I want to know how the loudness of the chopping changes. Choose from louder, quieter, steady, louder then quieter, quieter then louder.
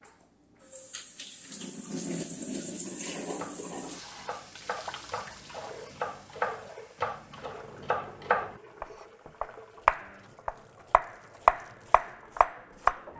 louder.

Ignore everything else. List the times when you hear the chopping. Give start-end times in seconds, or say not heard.
3.4-13.0.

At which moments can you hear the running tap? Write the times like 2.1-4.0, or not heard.
0.0-13.1.